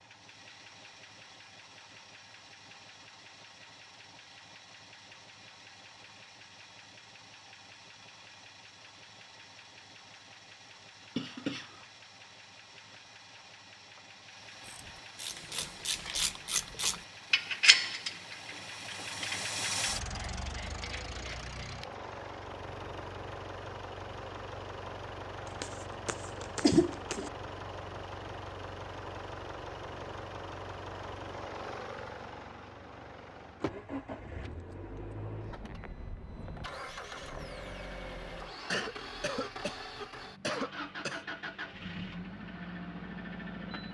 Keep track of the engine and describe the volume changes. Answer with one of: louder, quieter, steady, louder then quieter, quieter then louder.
louder.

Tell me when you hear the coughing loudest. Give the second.
27 s.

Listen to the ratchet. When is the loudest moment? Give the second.
18 s.